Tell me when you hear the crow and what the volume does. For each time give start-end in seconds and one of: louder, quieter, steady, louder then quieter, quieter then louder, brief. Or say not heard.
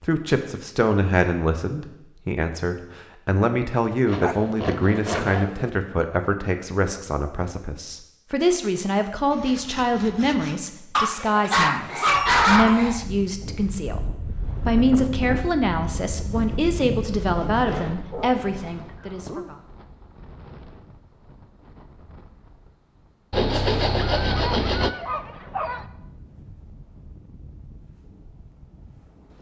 not heard.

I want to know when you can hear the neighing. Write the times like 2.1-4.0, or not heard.
not heard.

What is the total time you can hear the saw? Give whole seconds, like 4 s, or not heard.
6 s.